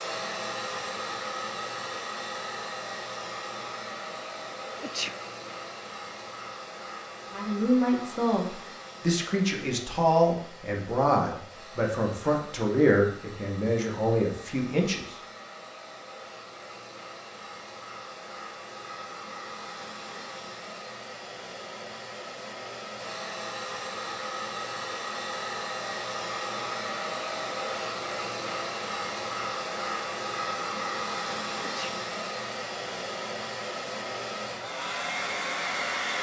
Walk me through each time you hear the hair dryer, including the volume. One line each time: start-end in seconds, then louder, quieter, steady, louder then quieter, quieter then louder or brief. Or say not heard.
0.0-36.1 quieter then louder.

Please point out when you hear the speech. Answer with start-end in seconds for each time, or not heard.
7.3-15.2.